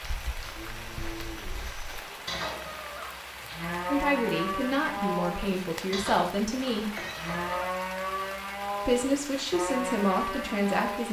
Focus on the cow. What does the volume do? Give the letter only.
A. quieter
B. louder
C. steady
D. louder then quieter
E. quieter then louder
B.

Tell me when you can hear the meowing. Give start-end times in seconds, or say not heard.
1.8-3.1, 6.5-7.7.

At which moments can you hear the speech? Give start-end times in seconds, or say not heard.
3.9-7.0, 8.8-11.0.